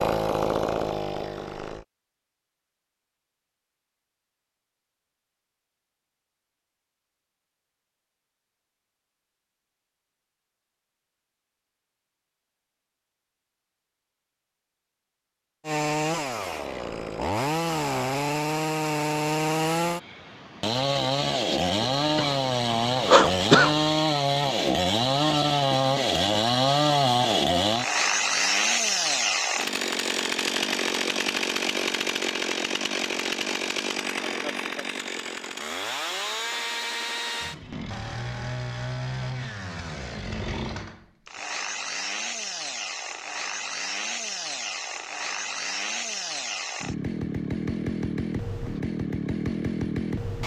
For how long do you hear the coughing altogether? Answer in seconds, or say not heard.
2 s.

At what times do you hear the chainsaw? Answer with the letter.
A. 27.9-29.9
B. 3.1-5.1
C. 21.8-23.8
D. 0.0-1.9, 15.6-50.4
D.